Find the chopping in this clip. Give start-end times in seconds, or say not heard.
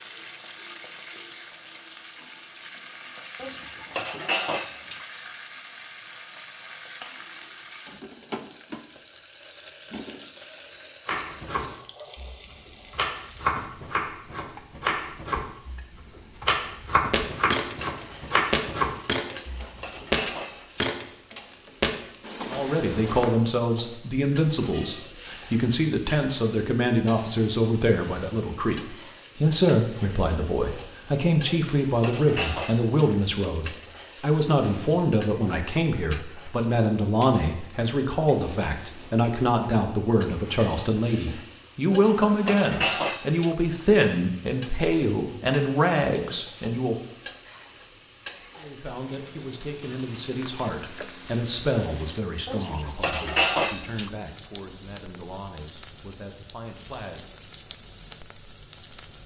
11.1-20.0.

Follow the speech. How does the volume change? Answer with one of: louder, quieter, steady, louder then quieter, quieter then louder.
quieter.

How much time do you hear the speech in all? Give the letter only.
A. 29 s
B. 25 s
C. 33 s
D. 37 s
C.